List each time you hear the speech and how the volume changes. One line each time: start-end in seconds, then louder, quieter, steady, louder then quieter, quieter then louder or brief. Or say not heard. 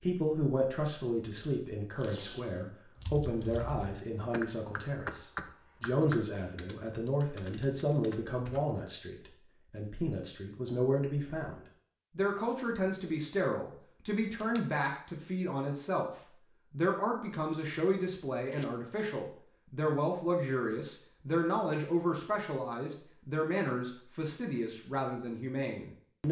0.0-11.6 steady
12.2-26.2 steady.